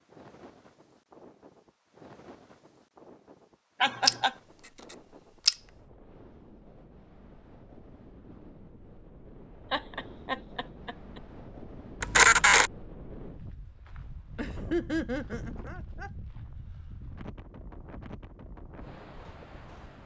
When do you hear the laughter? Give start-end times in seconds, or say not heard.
3.8-4.3, 9.7-11.2, 14.3-16.1.